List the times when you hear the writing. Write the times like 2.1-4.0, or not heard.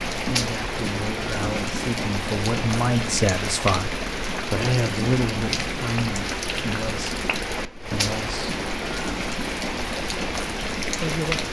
not heard.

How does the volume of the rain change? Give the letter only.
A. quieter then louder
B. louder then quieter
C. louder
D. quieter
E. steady
E.